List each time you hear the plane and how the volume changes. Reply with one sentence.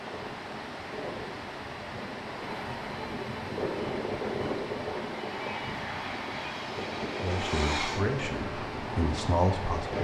You can hear the plane from 0.0 to 9.9 s, getting louder.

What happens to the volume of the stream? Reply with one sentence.
The volume of the stream stays about the same.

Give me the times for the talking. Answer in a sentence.
The talking can be heard from 7.2 to 9.9 s.